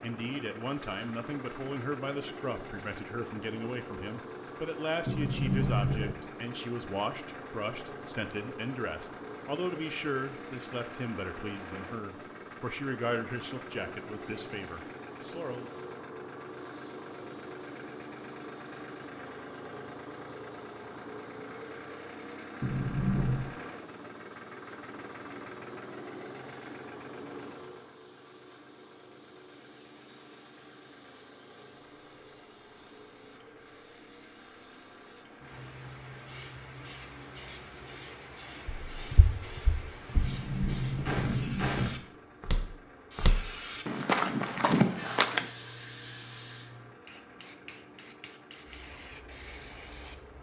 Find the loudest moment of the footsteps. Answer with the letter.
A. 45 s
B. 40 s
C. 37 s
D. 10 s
A.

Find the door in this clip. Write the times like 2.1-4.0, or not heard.
5.0-6.2, 22.6-23.5, 40.1-42.0.